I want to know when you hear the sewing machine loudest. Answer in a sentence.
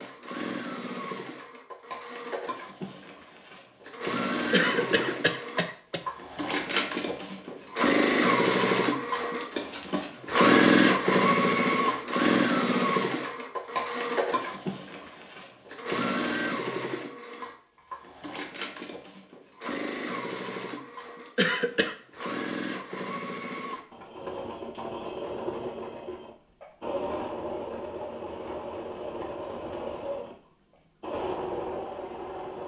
The volume of the sewing machine peaks at 11 seconds.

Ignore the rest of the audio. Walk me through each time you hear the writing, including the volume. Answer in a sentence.
You can't hear the writing here.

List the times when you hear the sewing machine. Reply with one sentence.
You can hear the sewing machine from 0.0 to 32.6 s.